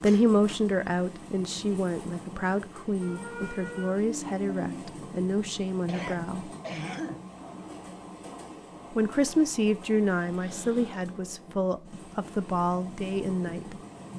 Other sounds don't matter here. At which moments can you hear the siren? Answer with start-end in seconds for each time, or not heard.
3.0-4.8.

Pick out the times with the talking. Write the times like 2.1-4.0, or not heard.
0.0-6.5, 8.9-13.8.